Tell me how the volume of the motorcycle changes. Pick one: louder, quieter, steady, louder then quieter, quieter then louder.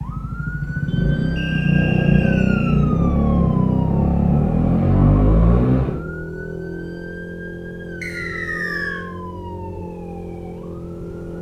quieter.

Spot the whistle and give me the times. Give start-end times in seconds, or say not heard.
1.4-2.8, 8.0-9.1.